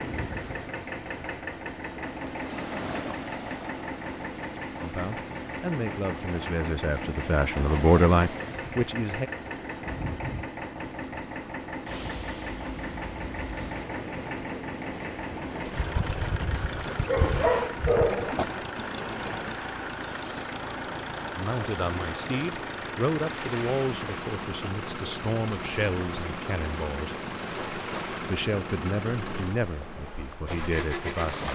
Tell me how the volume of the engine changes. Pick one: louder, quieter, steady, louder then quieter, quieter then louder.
steady.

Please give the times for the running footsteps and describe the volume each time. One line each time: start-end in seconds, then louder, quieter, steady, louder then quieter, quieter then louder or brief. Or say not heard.
not heard.